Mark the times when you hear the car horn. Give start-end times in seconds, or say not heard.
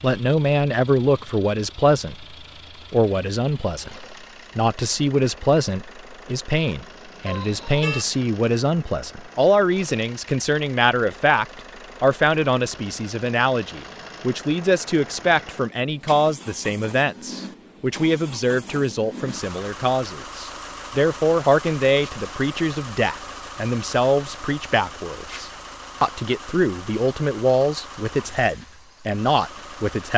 7.2-8.1.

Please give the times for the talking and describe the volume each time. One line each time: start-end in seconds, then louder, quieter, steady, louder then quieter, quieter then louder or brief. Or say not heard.
0.0-30.1 steady.